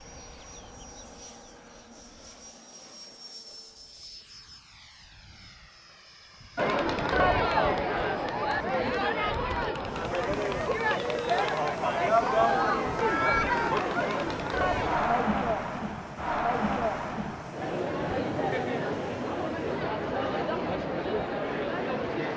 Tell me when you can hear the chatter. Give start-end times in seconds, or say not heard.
6.5-22.3.